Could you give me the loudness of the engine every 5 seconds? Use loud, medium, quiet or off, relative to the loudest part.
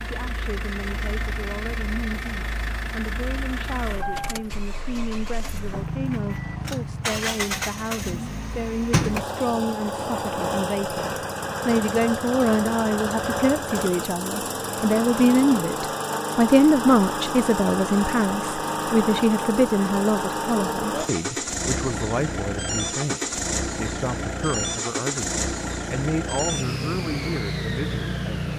medium, loud, loud, loud, loud, loud.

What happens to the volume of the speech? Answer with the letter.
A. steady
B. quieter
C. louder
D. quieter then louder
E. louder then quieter
E.